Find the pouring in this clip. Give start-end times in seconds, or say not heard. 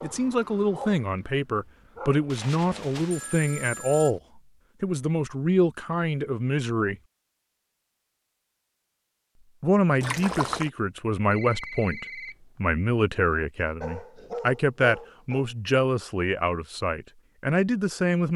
10.0-10.7.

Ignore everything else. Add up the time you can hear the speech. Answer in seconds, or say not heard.
16 s.